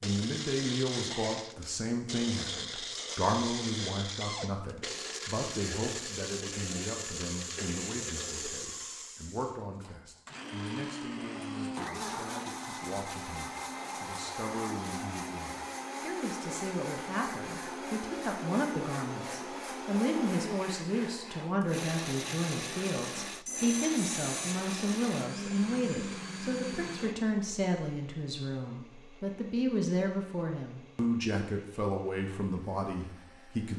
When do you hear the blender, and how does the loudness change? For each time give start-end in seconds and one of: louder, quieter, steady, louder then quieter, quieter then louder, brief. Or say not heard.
0.0-33.7 quieter.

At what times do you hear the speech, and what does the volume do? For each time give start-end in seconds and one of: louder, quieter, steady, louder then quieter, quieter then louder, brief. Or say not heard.
0.0-33.7 quieter then louder.